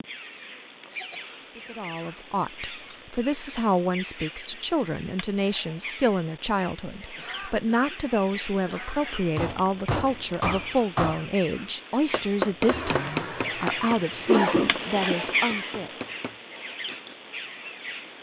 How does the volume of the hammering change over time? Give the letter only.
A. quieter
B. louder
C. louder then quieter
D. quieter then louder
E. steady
A.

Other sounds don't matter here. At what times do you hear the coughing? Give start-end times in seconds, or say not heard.
0.9-2.1, 7.2-9.2, 12.7-15.2.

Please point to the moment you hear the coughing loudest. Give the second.
14 s.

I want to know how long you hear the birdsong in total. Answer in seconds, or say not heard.
18 s.